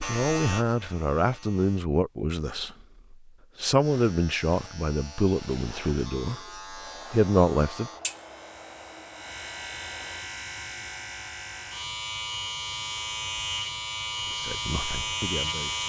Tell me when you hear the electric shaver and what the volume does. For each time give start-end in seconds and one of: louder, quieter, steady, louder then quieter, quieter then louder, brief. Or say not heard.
0.0-1.9 brief
3.8-15.8 louder.